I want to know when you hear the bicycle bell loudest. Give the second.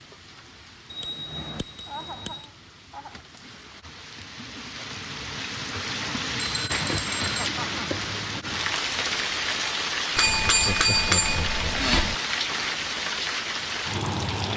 11 s.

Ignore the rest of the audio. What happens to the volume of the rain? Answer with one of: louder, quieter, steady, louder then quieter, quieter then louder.
louder.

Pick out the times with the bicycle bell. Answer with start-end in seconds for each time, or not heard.
0.9-2.5, 6.3-7.5, 10.2-12.2.